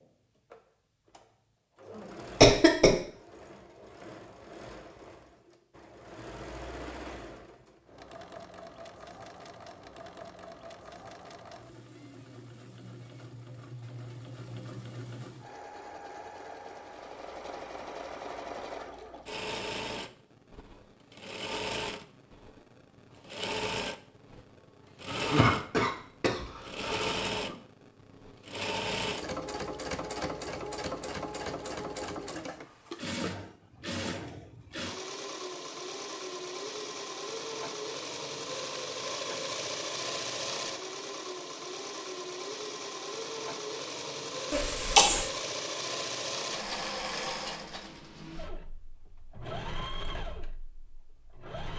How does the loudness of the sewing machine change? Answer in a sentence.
The loudness of the sewing machine goes up.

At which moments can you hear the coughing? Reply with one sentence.
You can hear the coughing from 2.4 to 3.0 s, from 25.1 to 27.6 s and from 44.5 to 45.2 s.